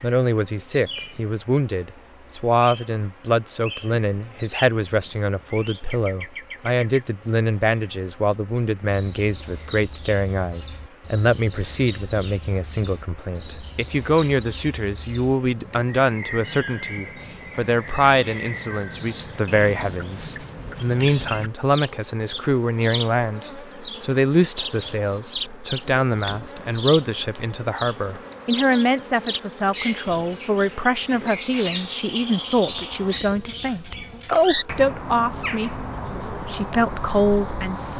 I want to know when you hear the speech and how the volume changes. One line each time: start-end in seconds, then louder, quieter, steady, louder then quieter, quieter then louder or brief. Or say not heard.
0.0-37.9 steady.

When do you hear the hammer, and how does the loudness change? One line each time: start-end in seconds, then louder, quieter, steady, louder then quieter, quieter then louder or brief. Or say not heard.
not heard.